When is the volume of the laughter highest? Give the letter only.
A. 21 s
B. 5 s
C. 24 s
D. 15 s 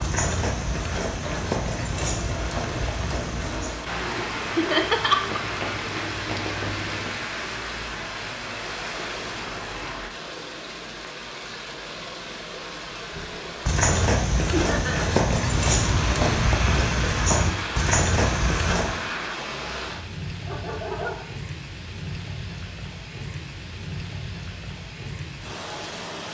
B.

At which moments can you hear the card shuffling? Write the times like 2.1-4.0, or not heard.
5.3-7.2.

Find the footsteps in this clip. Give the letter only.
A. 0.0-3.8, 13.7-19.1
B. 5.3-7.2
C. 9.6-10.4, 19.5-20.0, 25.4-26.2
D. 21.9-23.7
A.